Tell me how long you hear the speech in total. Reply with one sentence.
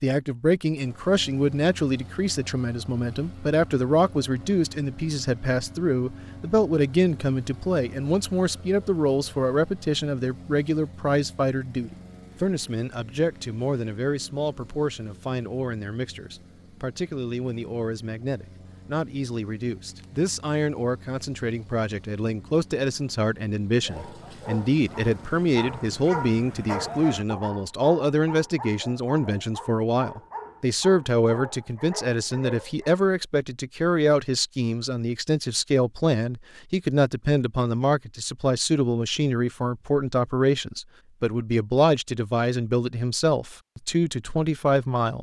You can hear the speech for 45 seconds altogether.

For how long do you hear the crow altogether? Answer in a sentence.
The crow can't be heard in this clip.